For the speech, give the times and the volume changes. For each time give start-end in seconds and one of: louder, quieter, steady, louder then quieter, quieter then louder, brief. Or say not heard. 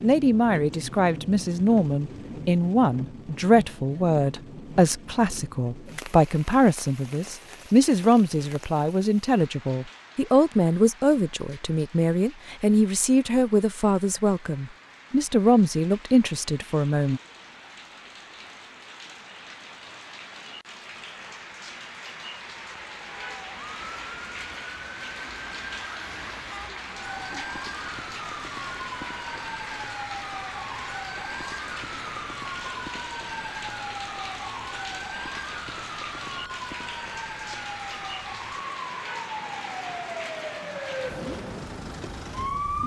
0.0-17.2 steady.